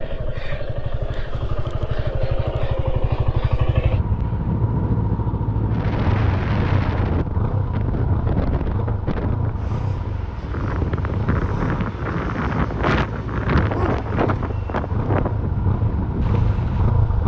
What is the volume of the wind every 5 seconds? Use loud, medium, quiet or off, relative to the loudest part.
medium, loud, loud, loud.